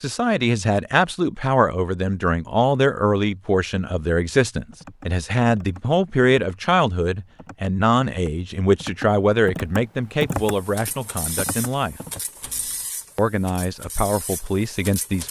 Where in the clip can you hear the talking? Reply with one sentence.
You can hear the talking from 0.0 to 12.0 s and from 13.2 to 15.2 s.